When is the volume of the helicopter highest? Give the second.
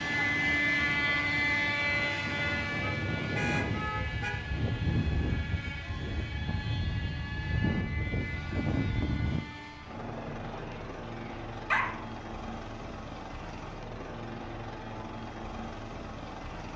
1 s.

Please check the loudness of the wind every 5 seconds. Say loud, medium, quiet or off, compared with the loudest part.
loud, loud, off, off.